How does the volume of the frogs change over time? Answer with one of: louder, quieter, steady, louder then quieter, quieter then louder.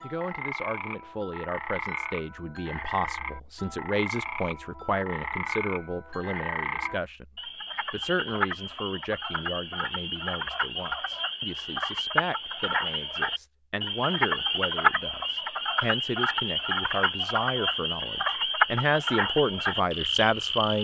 louder.